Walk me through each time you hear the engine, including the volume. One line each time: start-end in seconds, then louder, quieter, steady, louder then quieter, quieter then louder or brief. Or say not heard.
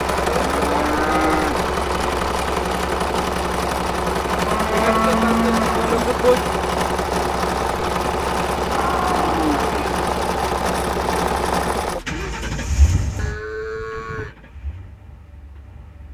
0.0-16.1 quieter.